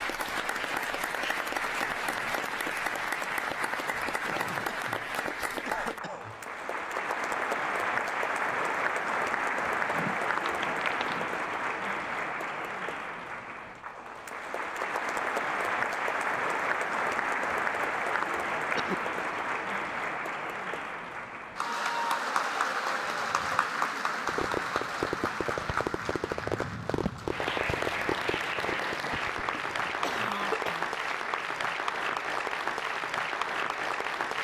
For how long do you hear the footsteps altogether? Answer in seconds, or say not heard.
2 s.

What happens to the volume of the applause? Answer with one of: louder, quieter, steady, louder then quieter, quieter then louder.
steady.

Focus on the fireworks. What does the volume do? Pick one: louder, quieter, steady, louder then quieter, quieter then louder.
quieter.